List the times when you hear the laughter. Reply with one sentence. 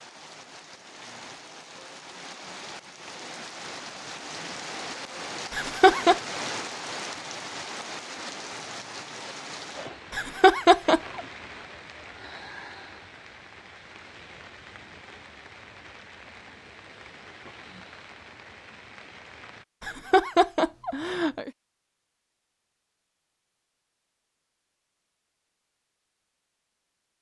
You can hear the laughter from 5.5 to 6.2 s, from 10.1 to 11.2 s and from 19.8 to 21.5 s.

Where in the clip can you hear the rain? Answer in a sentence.
The rain can be heard from 0.0 to 19.6 s.